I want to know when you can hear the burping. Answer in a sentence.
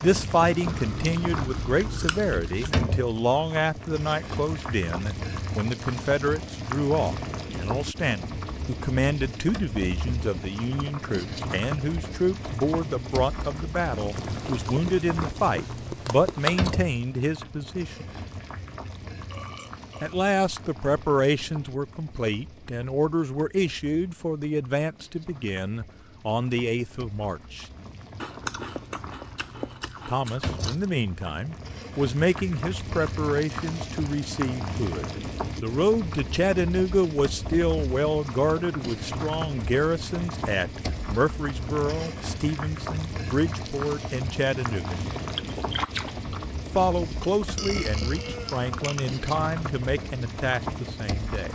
The burping can be heard from 19.3 to 20.2 s and from 46.8 to 49.2 s.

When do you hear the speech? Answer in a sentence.
The speech can be heard from 0.0 to 18.1 s, from 20.0 to 27.6 s, from 30.1 to 45.0 s and from 46.8 to 51.4 s.